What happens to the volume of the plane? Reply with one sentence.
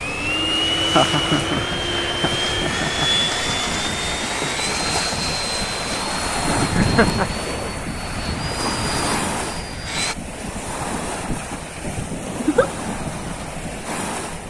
The loudness of the plane goes down.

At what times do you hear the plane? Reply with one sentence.
The plane can be heard from 0.0 to 10.2 s.